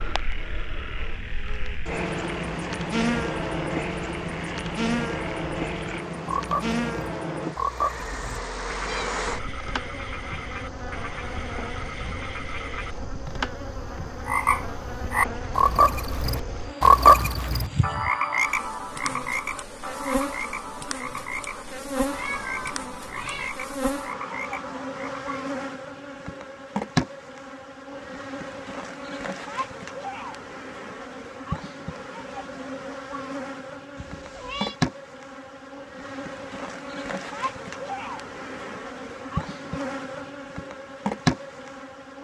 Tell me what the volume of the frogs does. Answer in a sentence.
The loudness of the frogs goes up, then down.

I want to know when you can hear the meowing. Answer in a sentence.
The meowing can be heard from 8.0 to 9.3 s, from 22.1 to 23.5 s and from 34.0 to 34.8 s.